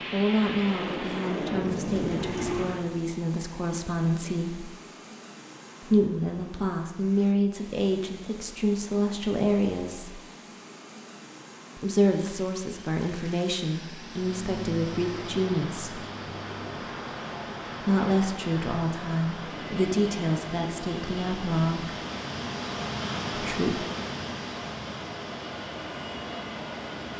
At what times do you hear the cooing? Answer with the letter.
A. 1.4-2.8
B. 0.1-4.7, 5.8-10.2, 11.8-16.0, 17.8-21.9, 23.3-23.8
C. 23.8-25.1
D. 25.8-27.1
A.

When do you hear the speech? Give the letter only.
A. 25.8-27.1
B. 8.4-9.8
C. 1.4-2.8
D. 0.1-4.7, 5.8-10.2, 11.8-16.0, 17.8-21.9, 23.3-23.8
D.